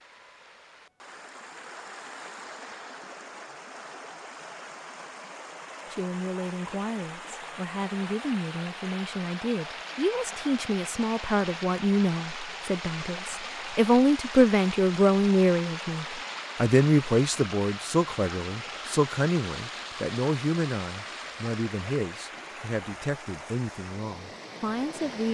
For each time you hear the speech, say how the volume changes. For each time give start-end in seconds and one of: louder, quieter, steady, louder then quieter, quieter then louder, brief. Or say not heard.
5.9-25.2 louder then quieter.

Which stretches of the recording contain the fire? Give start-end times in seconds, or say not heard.
not heard.